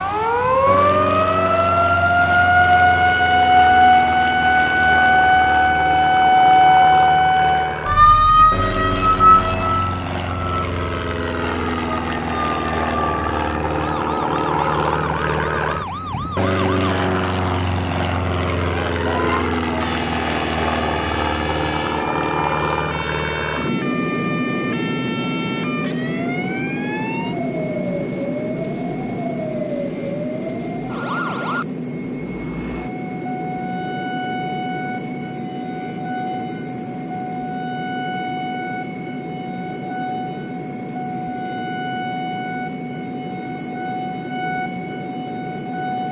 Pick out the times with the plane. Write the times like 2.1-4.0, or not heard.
0.0-46.0.